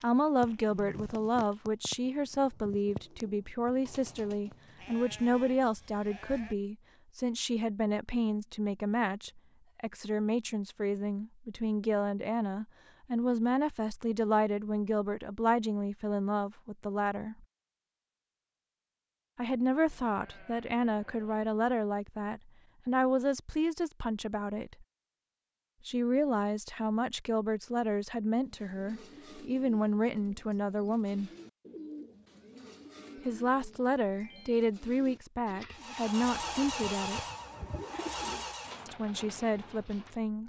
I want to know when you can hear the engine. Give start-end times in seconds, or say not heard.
35.7-38.9.